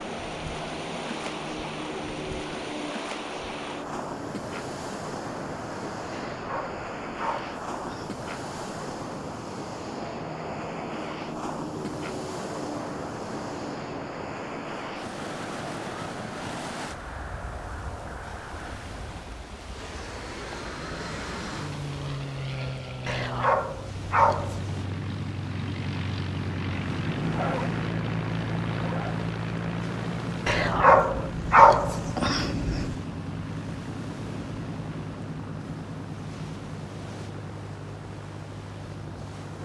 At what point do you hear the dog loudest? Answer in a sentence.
The loudest moment of the dog is at 32 seconds.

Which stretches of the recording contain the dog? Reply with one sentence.
The dog can be heard from 6.1 to 8.1 s, from 23.1 to 24.6 s and from 30.4 to 33.0 s.